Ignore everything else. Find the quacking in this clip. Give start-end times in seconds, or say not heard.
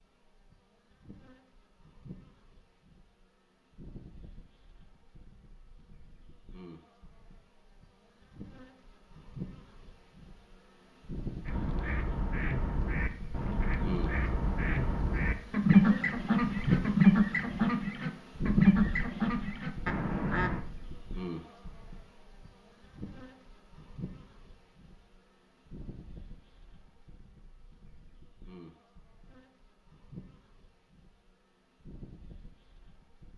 11.4-20.6.